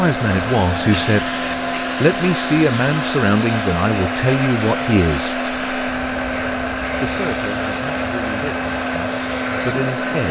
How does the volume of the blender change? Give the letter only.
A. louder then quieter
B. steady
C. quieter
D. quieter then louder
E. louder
B.